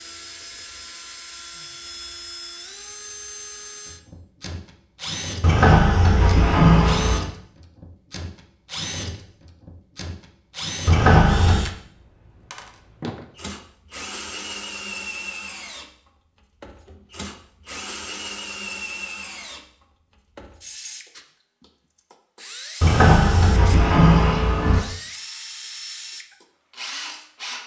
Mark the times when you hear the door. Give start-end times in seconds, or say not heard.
5.4-7.2, 10.8-11.7, 22.8-24.8.